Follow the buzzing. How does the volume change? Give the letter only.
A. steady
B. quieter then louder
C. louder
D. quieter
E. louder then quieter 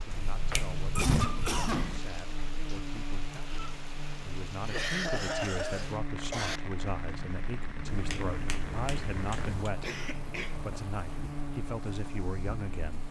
A.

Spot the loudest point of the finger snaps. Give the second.
1 s.